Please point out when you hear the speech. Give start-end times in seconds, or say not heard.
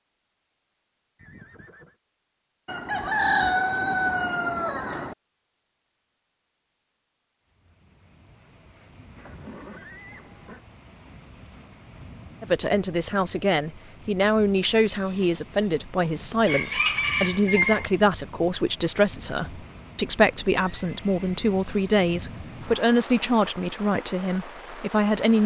12.4-25.4.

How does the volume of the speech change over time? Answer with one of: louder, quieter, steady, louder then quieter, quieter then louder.
steady.